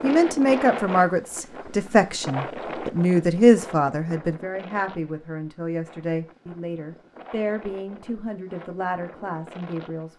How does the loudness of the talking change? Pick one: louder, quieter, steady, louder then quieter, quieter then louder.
quieter.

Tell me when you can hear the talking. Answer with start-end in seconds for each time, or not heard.
0.0-10.1.